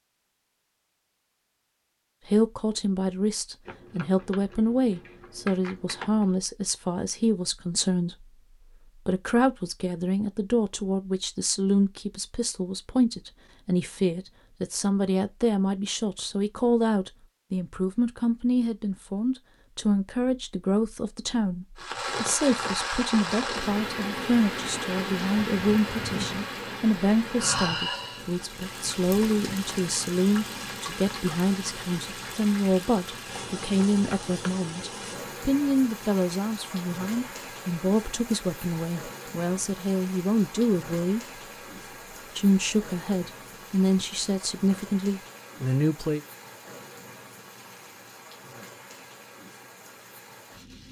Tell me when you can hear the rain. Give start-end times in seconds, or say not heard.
21.8-50.8.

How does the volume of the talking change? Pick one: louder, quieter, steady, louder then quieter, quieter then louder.
steady.